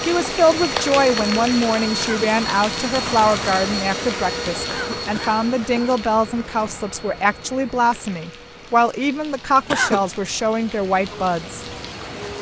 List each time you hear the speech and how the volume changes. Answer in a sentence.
You can hear the speech from 0.0 to 11.7 s, at a steady volume.